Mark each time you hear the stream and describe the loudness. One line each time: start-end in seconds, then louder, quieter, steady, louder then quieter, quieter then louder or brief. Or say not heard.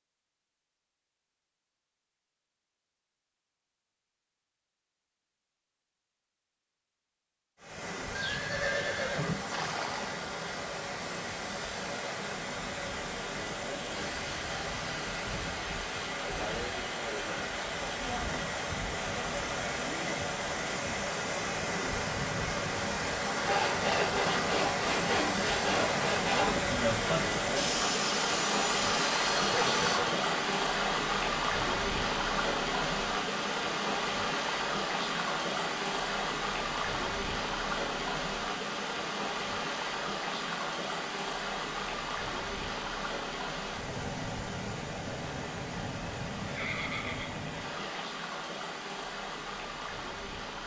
7.5-50.6 louder then quieter.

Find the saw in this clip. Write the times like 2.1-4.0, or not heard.
23.4-30.0.